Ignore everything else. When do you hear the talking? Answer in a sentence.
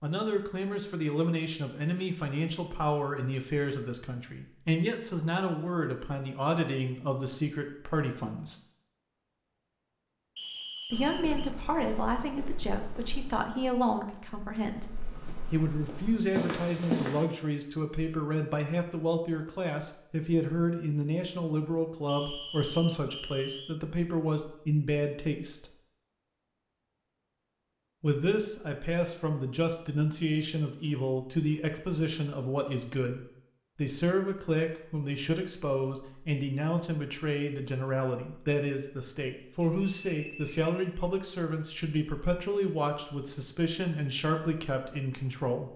The talking can be heard from 0.0 to 8.6 s, from 10.9 to 14.8 s, from 15.5 to 25.7 s and from 28.0 to 45.7 s.